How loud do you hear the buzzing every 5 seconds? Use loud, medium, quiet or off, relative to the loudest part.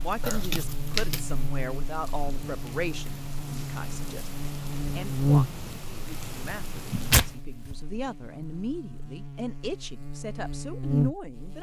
medium, loud, loud.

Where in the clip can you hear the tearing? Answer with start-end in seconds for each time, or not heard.
0.2-1.4, 7.1-7.8.